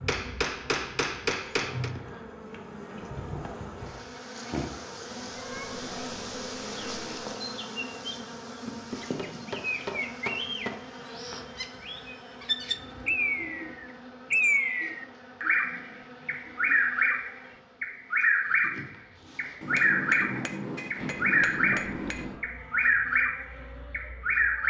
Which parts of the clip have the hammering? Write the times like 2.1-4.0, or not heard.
0.1-1.9, 8.7-10.8, 19.6-22.4.